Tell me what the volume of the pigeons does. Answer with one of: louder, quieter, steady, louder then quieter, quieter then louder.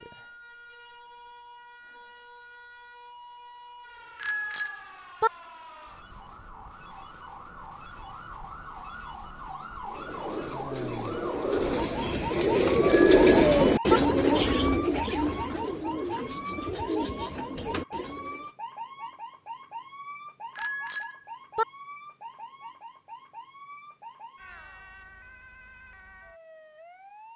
louder then quieter.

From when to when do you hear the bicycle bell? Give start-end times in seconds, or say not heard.
4.2-5.3, 12.8-14.0, 20.6-21.6.